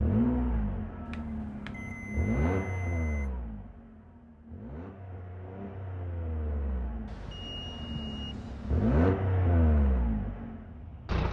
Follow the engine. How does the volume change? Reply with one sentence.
The volume of the engine goes down, then up.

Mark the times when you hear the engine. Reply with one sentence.
The engine can be heard from 0.0 to 11.2 s.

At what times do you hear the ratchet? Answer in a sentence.
The ratchet can't be heard in this clip.